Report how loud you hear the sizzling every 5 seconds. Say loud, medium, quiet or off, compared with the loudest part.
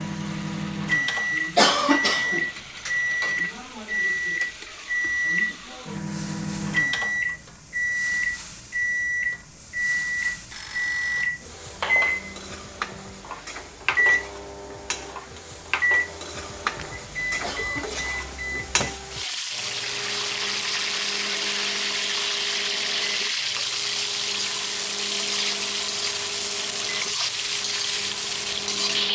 quiet, quiet, quiet, medium, loud, loud.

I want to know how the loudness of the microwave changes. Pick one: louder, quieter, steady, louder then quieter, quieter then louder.
quieter.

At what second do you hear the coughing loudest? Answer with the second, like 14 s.
2 s.